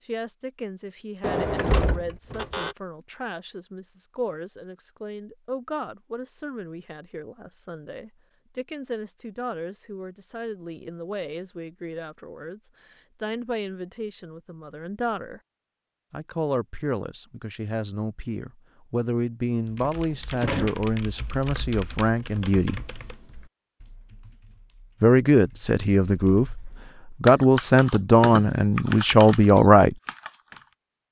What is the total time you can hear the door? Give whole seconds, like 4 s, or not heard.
2 s.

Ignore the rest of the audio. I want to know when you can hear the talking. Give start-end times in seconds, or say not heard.
0.1-15.4, 16.1-22.8, 25.0-29.9.